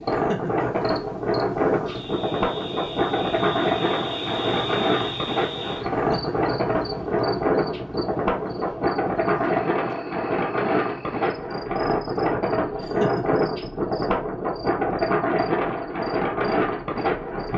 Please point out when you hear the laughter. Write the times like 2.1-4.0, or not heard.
0.1-0.7, 5.9-6.3, 12.8-13.4.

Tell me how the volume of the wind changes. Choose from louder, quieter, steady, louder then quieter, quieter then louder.
steady.